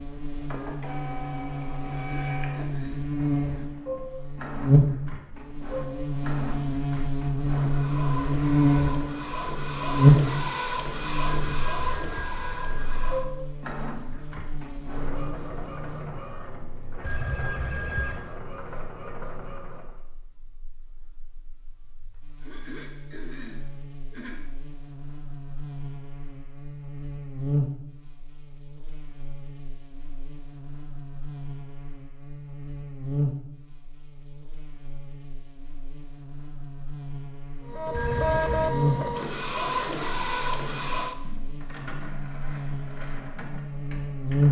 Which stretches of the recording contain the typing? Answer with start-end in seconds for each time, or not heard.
not heard.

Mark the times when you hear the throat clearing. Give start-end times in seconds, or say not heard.
1.9-3.7, 22.4-24.5.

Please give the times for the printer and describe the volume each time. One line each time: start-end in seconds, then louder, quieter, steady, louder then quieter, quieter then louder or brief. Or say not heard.
0.0-20.1 louder then quieter
37.6-44.4 quieter.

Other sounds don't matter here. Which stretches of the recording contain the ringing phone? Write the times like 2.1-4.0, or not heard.
11.4-13.2, 17.0-18.2, 37.9-38.7.